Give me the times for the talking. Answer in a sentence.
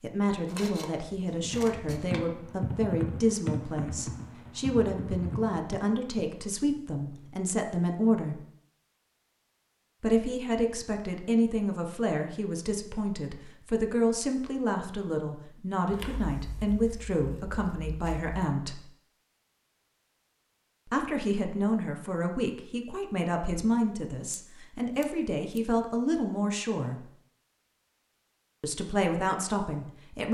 You can hear the talking from 0.0 to 8.4 s, from 10.0 to 18.9 s, from 20.9 to 27.1 s and from 28.6 to 30.2 s.